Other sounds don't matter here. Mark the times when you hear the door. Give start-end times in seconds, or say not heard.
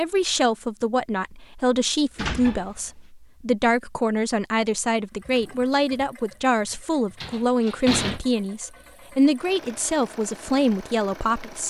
2.1-2.8, 7.2-8.2.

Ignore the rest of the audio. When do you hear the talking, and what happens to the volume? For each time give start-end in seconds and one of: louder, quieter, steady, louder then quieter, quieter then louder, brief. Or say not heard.
0.0-11.6 steady.